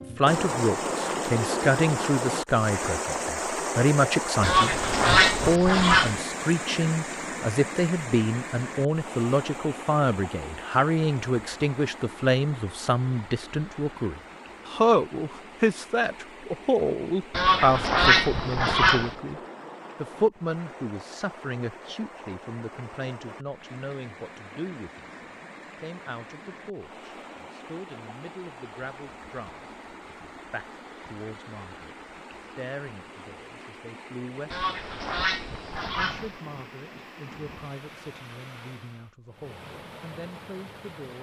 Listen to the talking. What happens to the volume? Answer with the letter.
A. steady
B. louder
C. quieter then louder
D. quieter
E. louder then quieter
D.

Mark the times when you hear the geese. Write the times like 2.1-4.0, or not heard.
4.4-6.2, 17.3-19.1, 34.5-36.4.